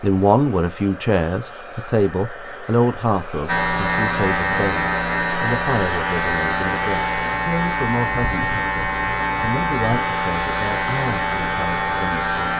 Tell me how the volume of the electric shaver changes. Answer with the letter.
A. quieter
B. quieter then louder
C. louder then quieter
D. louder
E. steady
E.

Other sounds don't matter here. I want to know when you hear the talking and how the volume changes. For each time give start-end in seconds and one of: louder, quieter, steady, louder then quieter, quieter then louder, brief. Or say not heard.
0.0-12.3 quieter.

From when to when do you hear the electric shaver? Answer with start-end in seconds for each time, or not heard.
3.5-12.5.